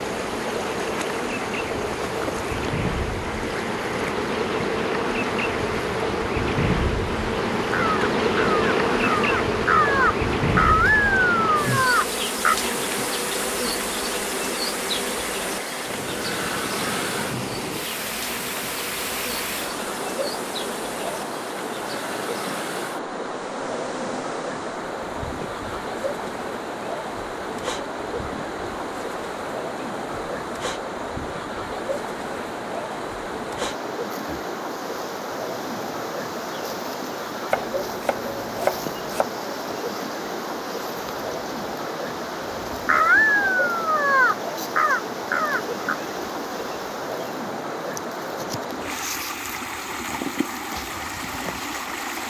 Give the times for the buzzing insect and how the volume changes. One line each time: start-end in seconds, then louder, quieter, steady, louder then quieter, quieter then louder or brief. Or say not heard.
0.0-52.2 quieter.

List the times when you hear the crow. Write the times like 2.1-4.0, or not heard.
7.7-12.6, 42.9-46.0.